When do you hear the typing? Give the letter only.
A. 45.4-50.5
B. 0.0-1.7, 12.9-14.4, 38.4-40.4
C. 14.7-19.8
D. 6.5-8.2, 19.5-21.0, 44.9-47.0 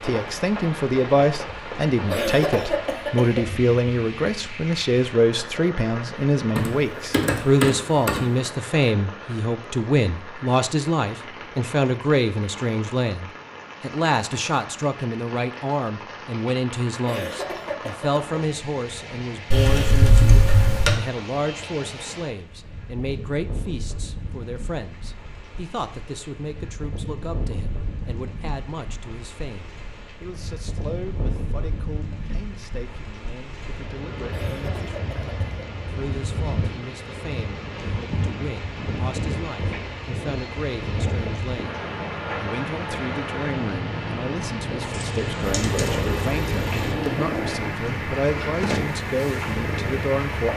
D.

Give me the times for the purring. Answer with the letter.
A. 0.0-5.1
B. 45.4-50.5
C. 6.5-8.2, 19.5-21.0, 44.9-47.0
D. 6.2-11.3
B.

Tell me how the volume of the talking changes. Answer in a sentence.
The loudness of the talking goes down, then up.